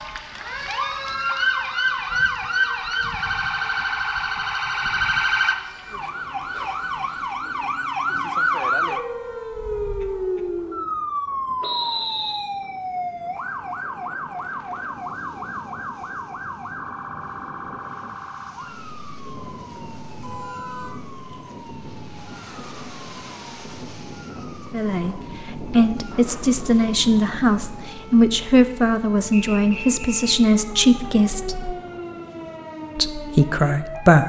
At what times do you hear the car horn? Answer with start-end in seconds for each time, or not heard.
20.1-21.0.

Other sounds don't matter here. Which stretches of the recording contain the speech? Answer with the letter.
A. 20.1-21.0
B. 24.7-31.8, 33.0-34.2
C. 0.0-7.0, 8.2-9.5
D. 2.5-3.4
B.